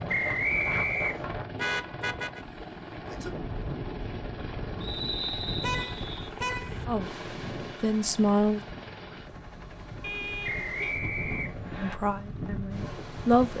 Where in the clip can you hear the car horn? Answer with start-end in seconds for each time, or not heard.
1.6-2.5, 5.6-6.8, 10.0-10.9.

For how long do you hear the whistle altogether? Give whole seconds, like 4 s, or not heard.
4 s.